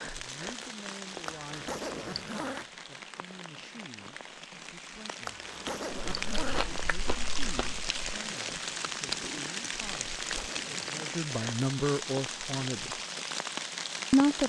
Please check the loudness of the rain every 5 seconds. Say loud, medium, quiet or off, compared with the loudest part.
medium, loud, loud.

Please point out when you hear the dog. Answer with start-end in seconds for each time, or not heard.
not heard.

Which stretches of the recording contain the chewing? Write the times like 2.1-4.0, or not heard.
5.9-8.2.